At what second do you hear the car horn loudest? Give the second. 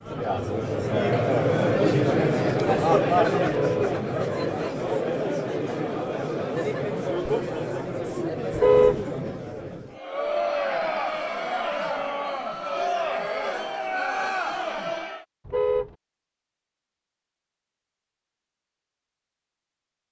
9 s.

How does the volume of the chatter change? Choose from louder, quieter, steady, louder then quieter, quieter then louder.
quieter.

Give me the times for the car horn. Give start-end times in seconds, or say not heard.
3.5-4.0, 8.5-9.1, 15.4-15.9.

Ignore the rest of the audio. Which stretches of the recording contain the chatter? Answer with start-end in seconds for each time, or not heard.
0.0-15.2.